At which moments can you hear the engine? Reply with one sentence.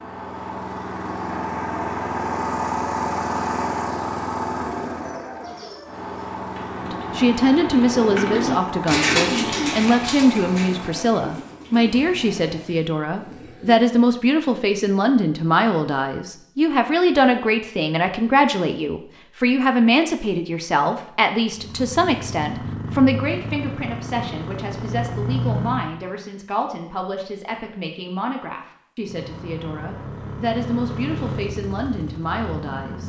You can hear the engine from 0.0 to 12.8 s, from 21.5 to 25.9 s and from 29.0 to 33.0 s.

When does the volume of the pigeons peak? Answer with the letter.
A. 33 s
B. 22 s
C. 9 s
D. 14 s
C.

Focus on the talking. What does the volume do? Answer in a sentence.
The loudness of the talking goes down.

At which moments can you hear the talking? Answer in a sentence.
You can hear the talking from 6.8 to 33.0 s.